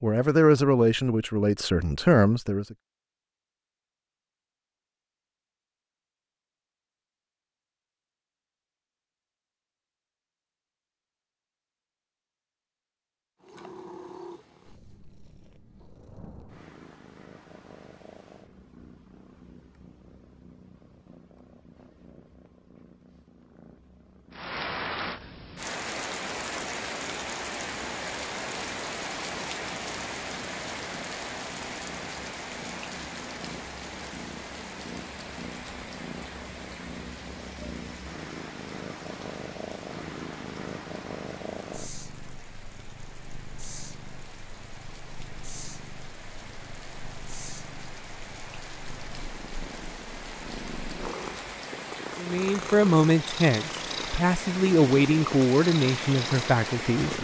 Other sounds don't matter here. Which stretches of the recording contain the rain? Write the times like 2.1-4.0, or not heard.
24.3-57.1.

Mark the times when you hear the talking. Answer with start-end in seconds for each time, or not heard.
0.0-2.8, 52.1-57.1.